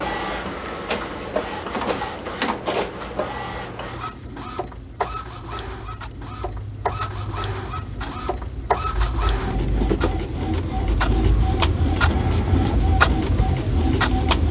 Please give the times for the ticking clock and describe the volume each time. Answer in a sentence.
You can hear the ticking clock from 0.0 to 14.4 s, getting louder.